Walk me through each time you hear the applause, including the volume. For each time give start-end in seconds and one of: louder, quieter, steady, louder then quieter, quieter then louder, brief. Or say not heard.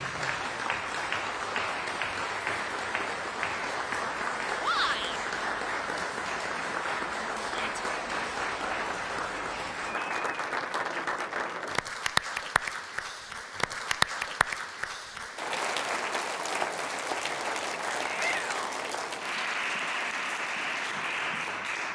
0.0-21.9 steady.